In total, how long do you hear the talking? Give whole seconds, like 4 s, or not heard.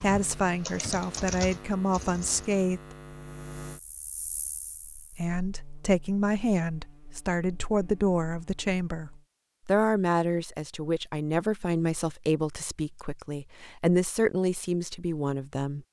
14 s.